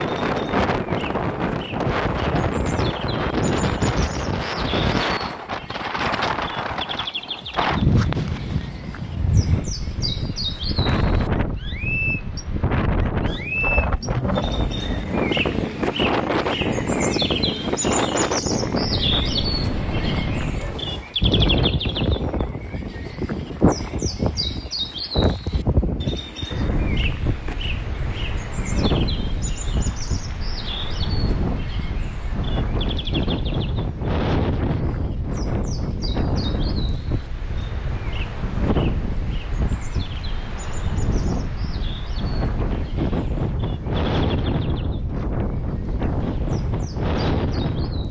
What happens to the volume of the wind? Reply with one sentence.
The loudness of the wind stays about the same.